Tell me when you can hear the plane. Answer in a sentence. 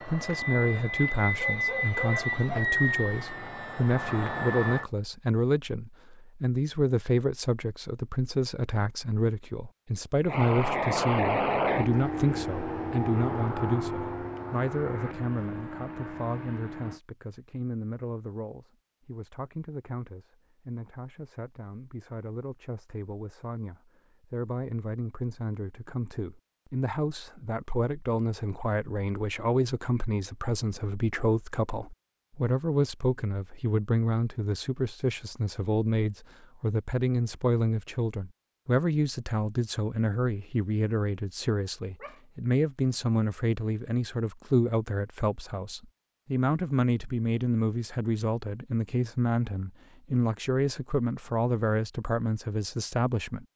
The plane can be heard from 0.0 to 4.8 s and from 10.2 to 17.0 s.